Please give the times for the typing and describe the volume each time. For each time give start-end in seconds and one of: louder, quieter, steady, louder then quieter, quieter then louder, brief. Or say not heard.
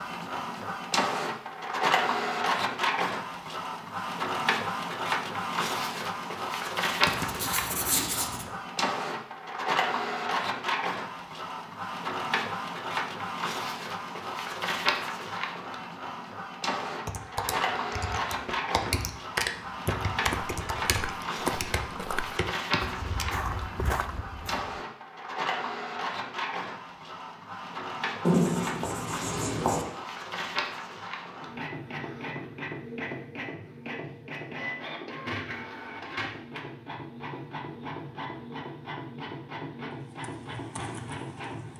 17.1-23.4 louder then quieter
40.0-41.7 brief.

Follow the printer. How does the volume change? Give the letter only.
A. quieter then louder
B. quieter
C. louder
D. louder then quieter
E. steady
B.